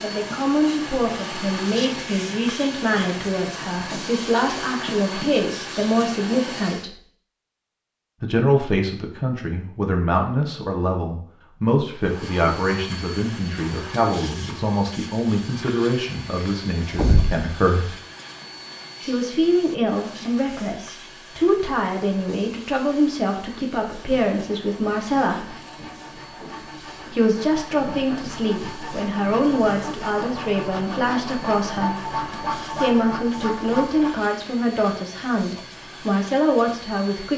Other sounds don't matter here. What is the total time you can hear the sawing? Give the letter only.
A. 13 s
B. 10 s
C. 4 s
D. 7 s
B.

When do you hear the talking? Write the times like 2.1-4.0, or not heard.
0.0-7.0, 8.2-17.9, 19.1-25.6, 27.1-31.9, 32.8-37.3.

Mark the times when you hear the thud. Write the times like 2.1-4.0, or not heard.
16.9-17.4.